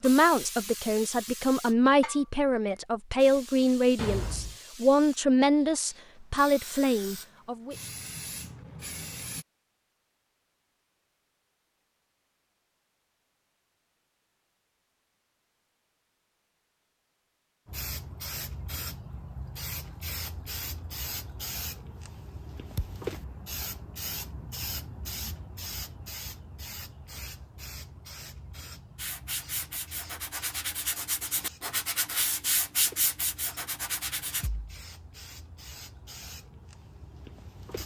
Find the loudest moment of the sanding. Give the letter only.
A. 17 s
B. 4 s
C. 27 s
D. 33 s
D.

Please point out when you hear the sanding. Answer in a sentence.
The sanding can be heard from 28.9 to 34.5 s.